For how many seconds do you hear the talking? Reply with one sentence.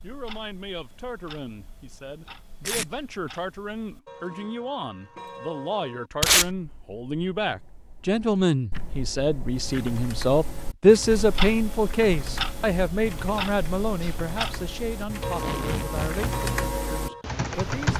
You can hear the talking for 18 seconds altogether.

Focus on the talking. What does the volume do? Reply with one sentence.
The loudness of the talking goes up, then down.